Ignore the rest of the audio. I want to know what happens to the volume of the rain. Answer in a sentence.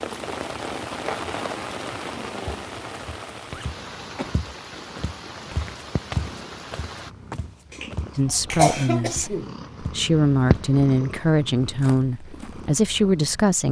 The volume of the rain goes down.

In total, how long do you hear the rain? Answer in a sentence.
The rain can be heard for 7 seconds in total.